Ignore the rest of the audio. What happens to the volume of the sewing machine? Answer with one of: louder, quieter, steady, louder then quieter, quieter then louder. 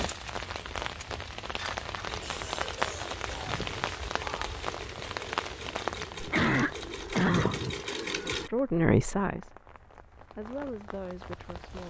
louder.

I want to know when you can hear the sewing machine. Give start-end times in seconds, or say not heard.
2.0-8.5.